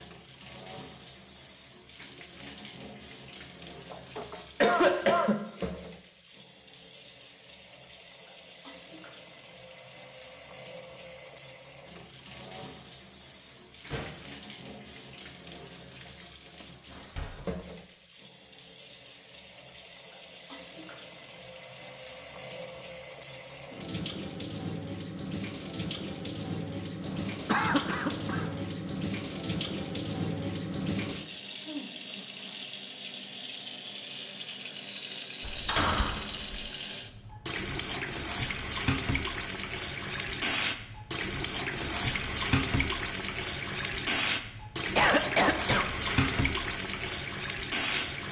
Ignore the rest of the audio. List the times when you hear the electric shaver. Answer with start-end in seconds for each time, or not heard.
not heard.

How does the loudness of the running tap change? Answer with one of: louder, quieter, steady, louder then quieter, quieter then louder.
louder.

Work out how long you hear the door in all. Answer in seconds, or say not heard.
3 s.